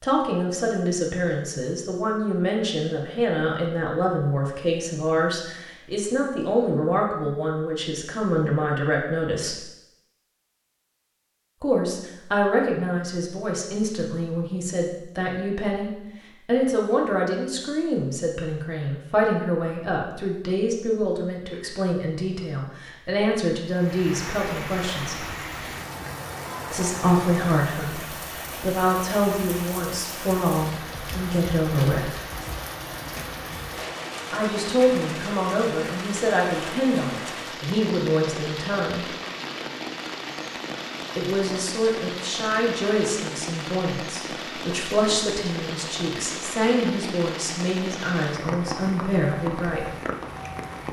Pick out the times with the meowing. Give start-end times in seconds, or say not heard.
not heard.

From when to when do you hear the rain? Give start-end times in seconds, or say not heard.
23.6-50.8.